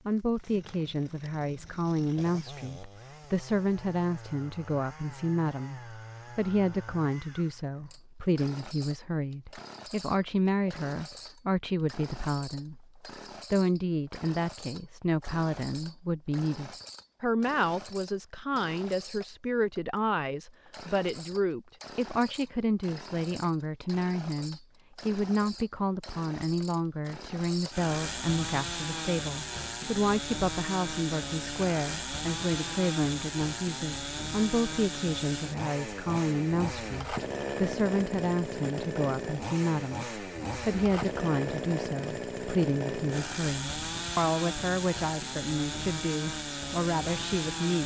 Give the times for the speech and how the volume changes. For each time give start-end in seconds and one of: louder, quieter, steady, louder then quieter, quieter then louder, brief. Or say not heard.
0.1-47.8 steady.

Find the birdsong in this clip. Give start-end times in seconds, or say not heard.
not heard.